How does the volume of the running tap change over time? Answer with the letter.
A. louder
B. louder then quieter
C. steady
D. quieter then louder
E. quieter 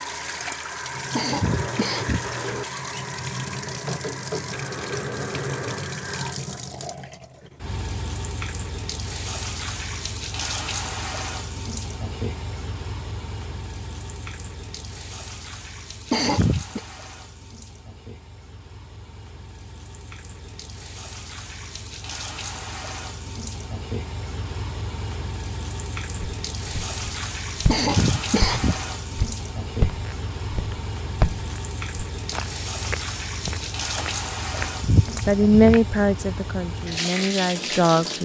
D.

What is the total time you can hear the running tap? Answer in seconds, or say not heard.
38 s.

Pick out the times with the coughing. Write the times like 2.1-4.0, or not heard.
1.1-2.3, 16.1-16.8, 27.6-28.9.